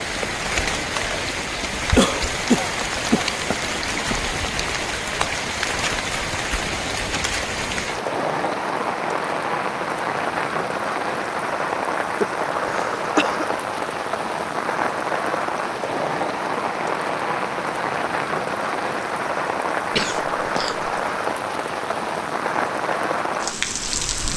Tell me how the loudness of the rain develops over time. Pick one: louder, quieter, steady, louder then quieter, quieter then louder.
steady.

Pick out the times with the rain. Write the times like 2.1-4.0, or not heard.
0.0-24.3.